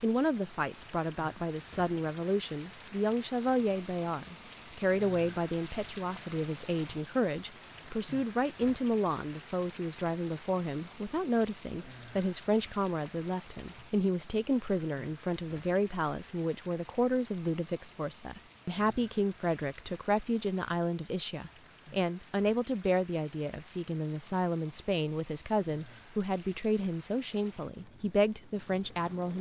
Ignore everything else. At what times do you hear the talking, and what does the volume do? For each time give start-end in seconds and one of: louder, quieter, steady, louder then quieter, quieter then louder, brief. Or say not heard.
0.0-29.3 steady.